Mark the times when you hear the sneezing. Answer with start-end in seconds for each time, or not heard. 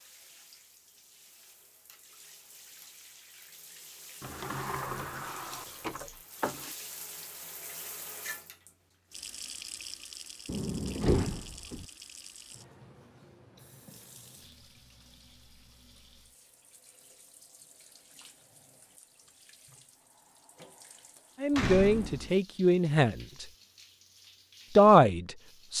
not heard.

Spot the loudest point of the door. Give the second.
11 s.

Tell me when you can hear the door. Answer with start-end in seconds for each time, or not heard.
4.2-6.7, 10.4-11.8, 21.5-22.4.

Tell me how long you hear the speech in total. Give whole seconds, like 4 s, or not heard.
3 s.